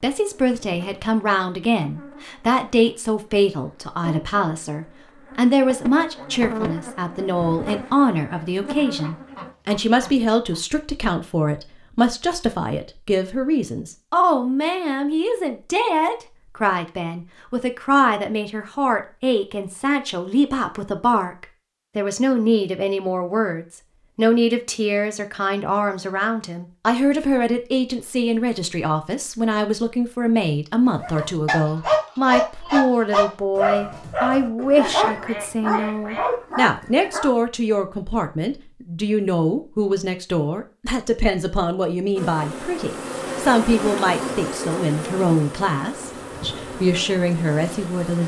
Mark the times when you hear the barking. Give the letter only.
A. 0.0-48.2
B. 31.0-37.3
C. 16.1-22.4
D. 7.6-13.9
B.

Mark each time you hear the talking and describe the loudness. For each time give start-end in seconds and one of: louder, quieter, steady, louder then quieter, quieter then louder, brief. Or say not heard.
0.0-48.2 steady.